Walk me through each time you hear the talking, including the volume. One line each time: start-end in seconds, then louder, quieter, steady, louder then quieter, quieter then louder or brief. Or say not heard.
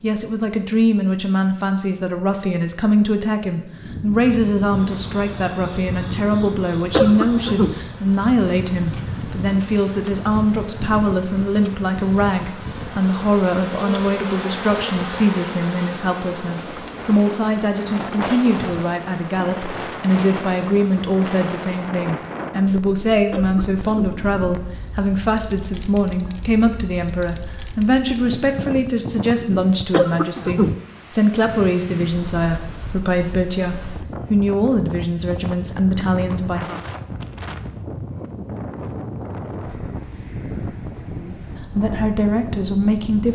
0.0-36.8 steady
41.1-43.3 brief.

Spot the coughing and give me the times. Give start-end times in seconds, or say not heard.
6.9-7.8, 23.3-24.1, 29.9-30.8.